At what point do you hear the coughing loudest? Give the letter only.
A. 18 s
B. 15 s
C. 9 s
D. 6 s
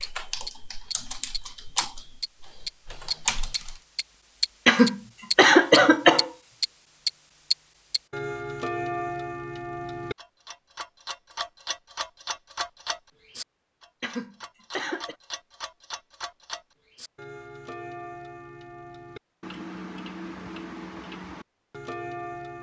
D.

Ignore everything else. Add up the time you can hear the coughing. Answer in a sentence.
The coughing can be heard for 3 seconds in total.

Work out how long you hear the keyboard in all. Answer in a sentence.
The keyboard can be heard for 4 seconds in total.